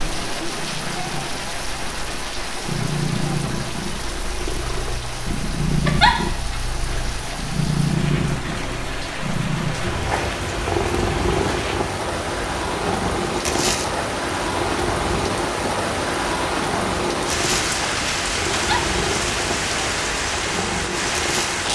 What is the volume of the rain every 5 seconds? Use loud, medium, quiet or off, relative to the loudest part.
medium, medium, loud, loud, loud.